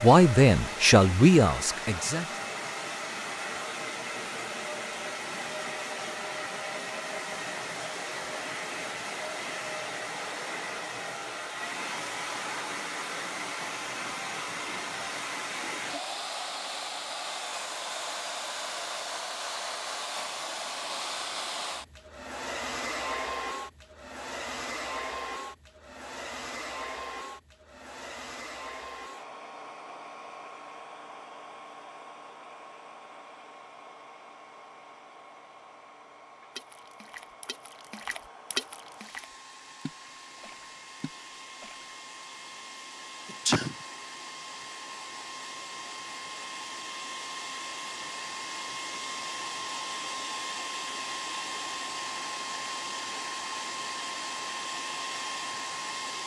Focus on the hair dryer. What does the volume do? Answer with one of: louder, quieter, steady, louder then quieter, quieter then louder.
quieter then louder.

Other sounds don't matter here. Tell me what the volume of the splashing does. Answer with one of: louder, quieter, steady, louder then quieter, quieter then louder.
louder then quieter.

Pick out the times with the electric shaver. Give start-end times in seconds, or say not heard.
not heard.